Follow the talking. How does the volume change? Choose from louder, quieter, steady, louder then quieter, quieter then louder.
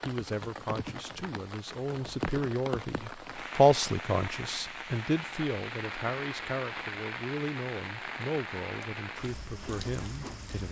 louder then quieter.